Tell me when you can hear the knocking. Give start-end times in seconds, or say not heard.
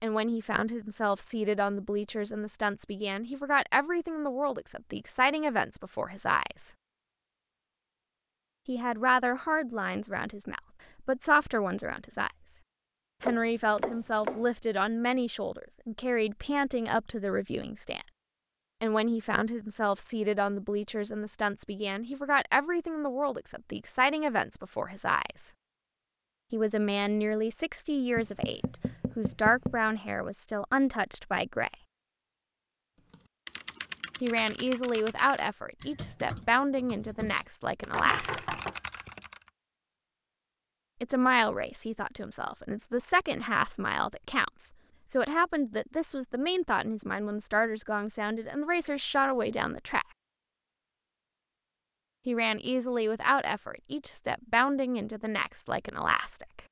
13.2-14.4, 28.1-29.9, 37.9-38.8.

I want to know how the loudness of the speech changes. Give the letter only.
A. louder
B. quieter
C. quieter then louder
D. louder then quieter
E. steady
E.